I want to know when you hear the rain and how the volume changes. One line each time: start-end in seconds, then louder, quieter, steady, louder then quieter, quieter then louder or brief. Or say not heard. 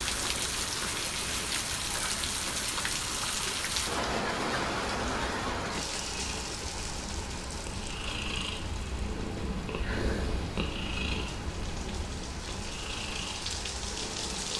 0.0-14.5 quieter then louder.